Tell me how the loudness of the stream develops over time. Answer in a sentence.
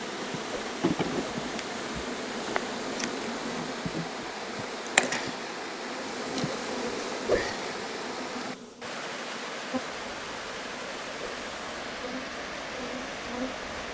The volume of the stream stays about the same.